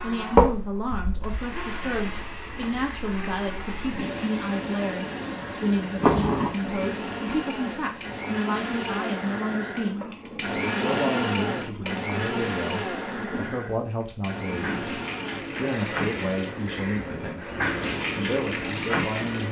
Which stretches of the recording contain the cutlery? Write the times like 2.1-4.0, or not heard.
not heard.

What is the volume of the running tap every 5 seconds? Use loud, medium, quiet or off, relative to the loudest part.
loud, loud, medium, loud.